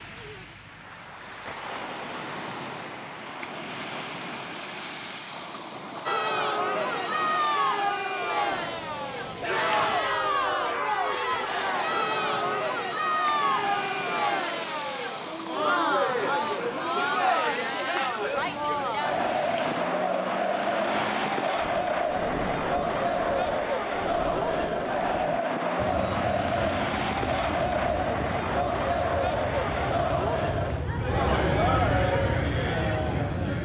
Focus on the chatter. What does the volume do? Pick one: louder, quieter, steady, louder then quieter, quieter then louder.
steady.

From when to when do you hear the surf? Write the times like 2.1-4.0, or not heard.
0.0-25.4.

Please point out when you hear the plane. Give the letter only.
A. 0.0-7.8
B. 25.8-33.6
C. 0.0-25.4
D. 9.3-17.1
B.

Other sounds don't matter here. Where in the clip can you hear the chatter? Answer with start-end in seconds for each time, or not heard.
6.0-33.6.